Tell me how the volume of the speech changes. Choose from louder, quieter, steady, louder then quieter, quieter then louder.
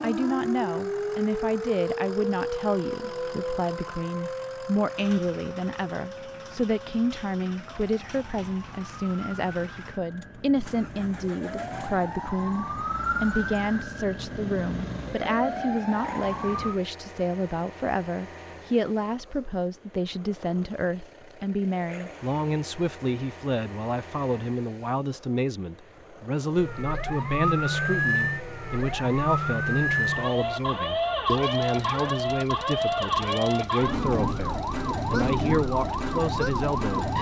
steady.